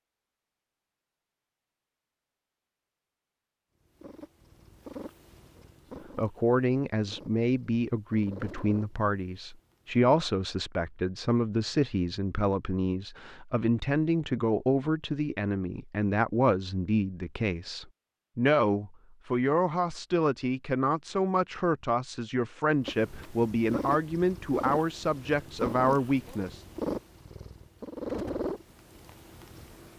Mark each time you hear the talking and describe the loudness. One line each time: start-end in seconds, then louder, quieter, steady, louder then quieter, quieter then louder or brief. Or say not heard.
6.2-26.6 steady.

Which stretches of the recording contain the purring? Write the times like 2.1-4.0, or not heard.
3.9-9.9, 22.9-29.9.